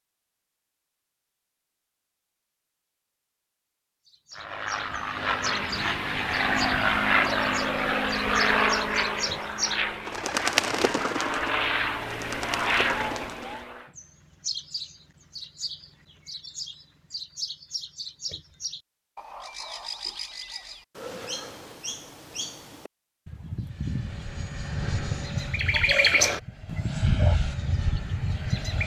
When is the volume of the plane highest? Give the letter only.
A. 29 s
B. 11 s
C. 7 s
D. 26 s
C.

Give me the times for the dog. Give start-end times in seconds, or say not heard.
25.7-27.4.